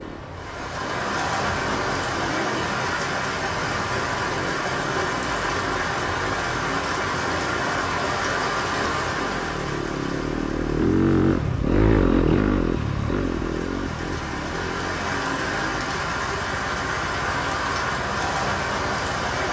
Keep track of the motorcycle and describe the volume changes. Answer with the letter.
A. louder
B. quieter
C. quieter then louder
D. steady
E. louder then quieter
E.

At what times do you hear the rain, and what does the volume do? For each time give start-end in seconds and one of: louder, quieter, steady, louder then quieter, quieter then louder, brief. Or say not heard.
0.0-19.4 quieter then louder.